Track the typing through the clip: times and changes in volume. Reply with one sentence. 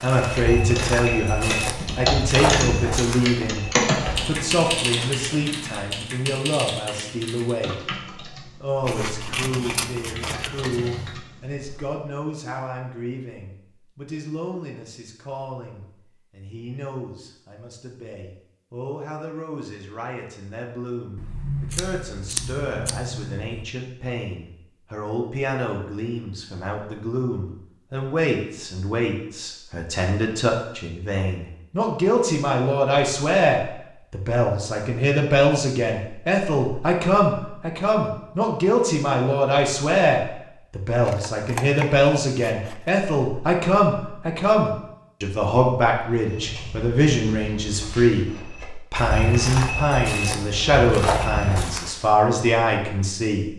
The typing can be heard from 0.0 to 11.9 s, getting quieter.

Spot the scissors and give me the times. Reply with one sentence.
You can hear the scissors from 8.8 to 11.2 s, from 21.1 to 23.6 s and from 40.9 to 42.9 s.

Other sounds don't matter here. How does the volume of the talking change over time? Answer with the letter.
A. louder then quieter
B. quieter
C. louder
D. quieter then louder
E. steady
D.